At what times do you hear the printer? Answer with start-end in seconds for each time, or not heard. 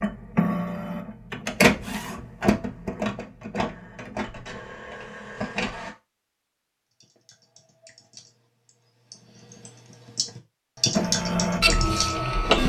0.0-6.0, 10.9-12.6.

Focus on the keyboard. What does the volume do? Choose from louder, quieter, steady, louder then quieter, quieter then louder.
louder.